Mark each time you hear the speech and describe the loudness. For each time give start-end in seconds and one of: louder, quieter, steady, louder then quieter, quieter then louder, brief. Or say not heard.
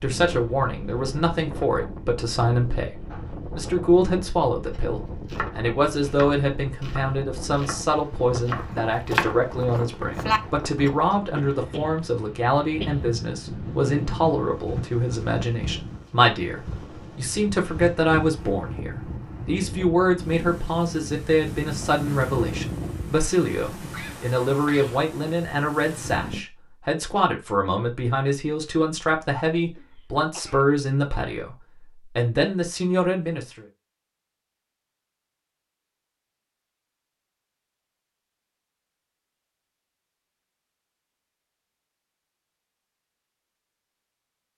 0.0-33.6 steady.